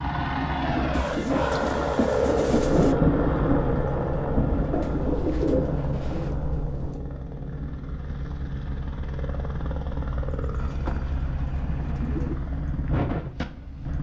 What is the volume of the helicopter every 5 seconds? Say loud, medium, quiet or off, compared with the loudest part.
loud, medium, medium.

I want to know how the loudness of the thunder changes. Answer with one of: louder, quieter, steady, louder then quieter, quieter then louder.
quieter.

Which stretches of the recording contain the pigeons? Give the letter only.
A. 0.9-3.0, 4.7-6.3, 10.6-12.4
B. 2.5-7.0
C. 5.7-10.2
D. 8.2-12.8
A.